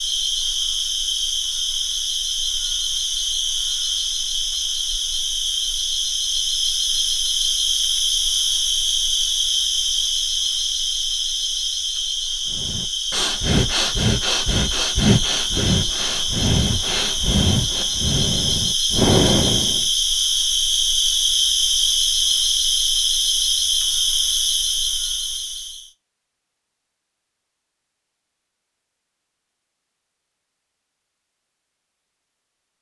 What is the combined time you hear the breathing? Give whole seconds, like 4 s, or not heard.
7 s.